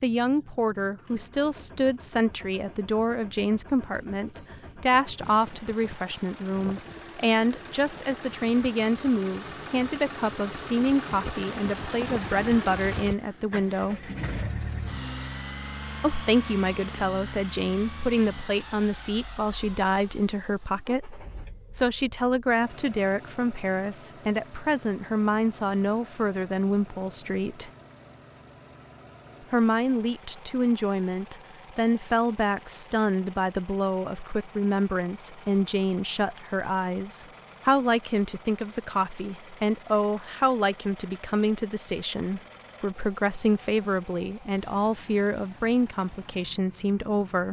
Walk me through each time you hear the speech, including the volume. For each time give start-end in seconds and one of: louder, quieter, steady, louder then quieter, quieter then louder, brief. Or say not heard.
0.0-14.1 steady
16.0-27.7 steady
29.5-47.4 steady.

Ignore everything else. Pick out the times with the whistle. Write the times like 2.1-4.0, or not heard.
not heard.